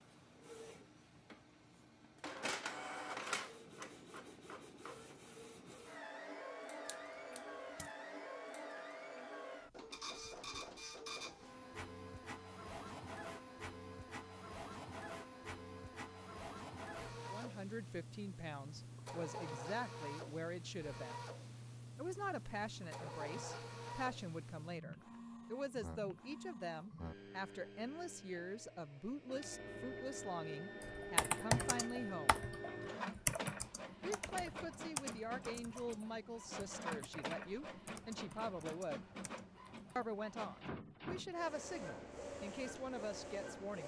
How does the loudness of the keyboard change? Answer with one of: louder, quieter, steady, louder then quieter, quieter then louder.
quieter.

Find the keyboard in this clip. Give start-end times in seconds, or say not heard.
30.8-40.1.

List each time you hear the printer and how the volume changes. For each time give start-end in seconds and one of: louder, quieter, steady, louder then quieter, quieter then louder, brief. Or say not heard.
0.0-43.8 steady.